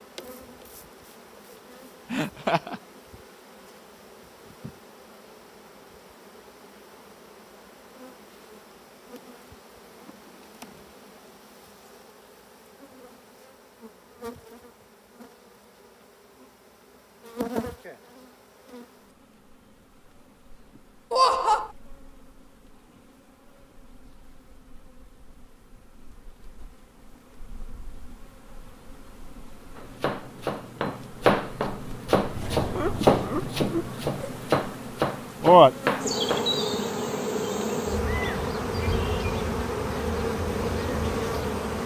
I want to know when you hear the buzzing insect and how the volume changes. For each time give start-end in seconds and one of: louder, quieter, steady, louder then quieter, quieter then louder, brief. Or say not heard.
0.0-41.8 louder.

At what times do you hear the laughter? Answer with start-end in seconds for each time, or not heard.
2.1-2.8, 21.1-21.7, 32.5-34.4.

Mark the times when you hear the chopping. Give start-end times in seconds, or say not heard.
29.8-36.6.